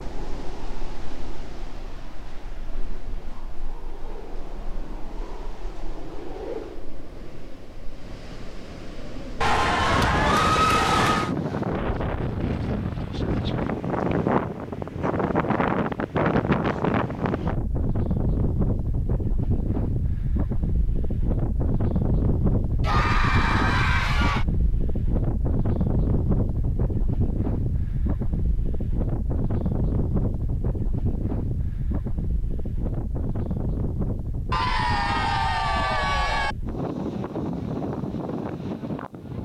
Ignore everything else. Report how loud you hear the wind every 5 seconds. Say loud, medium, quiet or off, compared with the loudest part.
quiet, quiet, loud, loud, loud, loud, medium, medium.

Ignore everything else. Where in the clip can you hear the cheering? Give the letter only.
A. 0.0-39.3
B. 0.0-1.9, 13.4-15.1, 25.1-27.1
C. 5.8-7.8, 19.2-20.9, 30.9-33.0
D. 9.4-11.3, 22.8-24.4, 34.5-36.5
D.